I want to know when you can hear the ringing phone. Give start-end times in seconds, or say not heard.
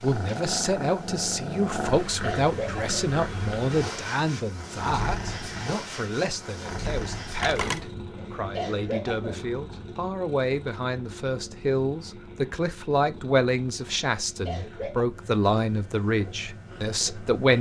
7.3-7.9.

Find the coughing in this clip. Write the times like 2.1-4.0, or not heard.
2.1-3.0, 8.2-9.3, 14.2-15.1.